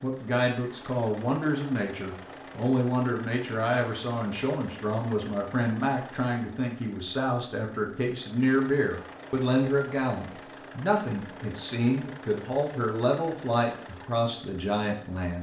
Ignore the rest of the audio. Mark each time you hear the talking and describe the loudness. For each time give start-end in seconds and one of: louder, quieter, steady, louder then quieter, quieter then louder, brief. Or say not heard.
0.0-15.3 steady.